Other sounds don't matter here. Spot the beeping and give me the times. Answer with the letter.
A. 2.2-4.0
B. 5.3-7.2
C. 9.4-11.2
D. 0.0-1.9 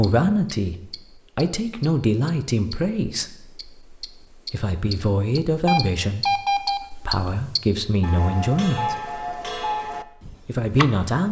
B.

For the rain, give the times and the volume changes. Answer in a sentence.
The rain can't be heard in this clip.